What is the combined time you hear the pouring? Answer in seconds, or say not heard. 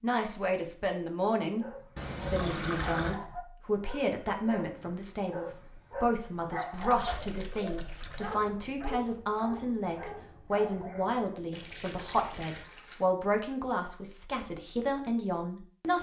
4 s.